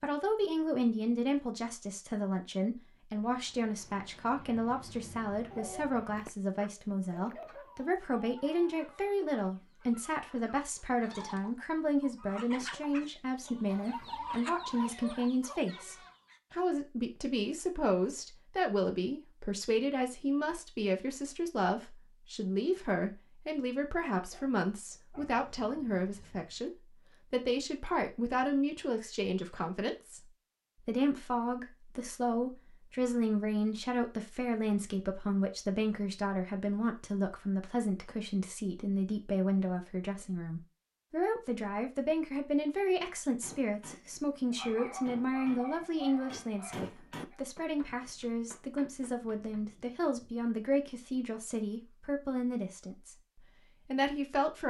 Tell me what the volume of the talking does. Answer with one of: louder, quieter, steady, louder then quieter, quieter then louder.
steady.